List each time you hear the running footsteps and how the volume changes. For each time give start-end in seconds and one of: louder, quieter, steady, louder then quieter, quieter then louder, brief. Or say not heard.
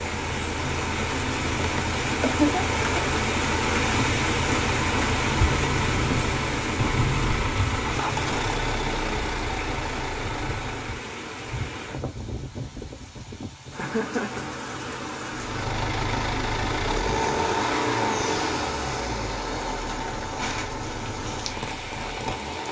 not heard.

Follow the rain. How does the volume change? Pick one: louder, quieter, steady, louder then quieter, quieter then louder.
quieter.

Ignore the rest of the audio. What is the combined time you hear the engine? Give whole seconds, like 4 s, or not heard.
18 s.